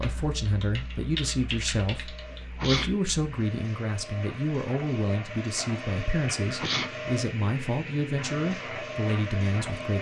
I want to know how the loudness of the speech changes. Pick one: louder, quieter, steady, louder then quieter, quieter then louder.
steady.